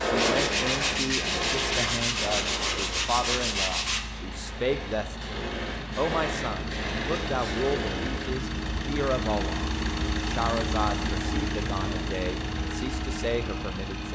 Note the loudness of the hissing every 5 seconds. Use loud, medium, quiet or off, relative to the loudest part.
loud, loud, off.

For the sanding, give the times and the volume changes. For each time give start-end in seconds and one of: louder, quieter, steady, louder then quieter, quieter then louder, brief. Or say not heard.
0.0-4.0 steady.